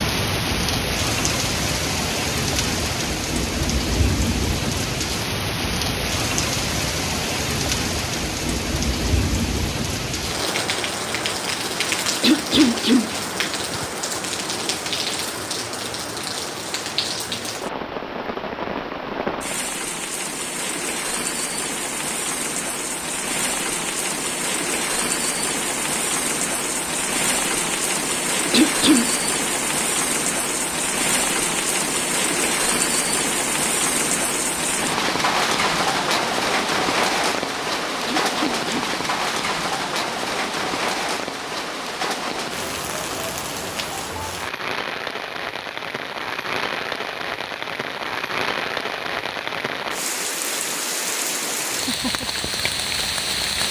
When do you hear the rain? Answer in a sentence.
You can hear the rain from 0.0 to 53.6 s.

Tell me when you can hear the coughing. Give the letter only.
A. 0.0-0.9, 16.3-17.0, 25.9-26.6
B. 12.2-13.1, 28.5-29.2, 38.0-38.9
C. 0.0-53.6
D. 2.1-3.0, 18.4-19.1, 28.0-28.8
B.